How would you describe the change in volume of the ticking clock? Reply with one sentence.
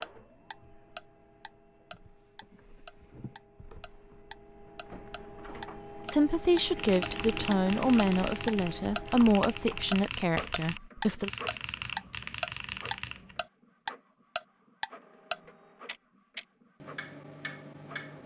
The loudness of the ticking clock goes up, then down.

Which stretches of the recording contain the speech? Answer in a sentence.
You can hear the speech from 6.0 to 11.3 s.